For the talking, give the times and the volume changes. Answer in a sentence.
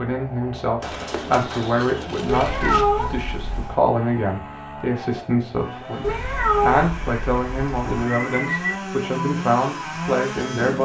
You can hear the talking from 0.0 to 10.8 s, at a steady volume.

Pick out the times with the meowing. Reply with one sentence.
The meowing can be heard from 2.2 to 3.8 s and from 6.0 to 7.9 s.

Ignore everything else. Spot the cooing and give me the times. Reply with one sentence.
You can hear the cooing from 0.8 to 2.9 s and from 8.1 to 8.8 s.